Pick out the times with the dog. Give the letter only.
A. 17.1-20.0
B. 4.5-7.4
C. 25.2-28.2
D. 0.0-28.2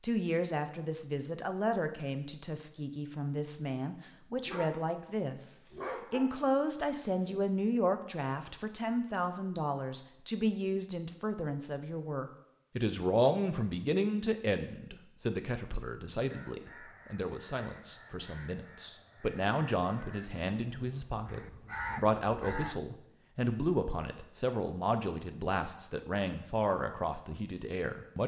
B.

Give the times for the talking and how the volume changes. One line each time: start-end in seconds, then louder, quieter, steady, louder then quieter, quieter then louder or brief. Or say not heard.
0.0-28.2 steady.